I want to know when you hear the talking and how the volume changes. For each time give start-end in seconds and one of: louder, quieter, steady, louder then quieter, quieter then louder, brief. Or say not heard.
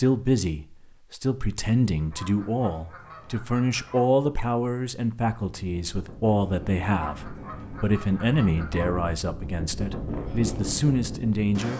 0.0-11.7 steady.